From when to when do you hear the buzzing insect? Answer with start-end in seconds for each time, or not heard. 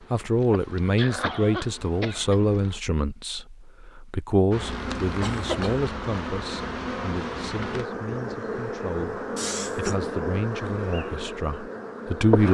0.0-2.9, 4.5-12.5.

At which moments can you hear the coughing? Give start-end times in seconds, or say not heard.
0.5-2.4, 4.7-5.8, 9.3-9.9.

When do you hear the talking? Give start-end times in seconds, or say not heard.
0.1-12.5.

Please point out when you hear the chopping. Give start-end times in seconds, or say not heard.
not heard.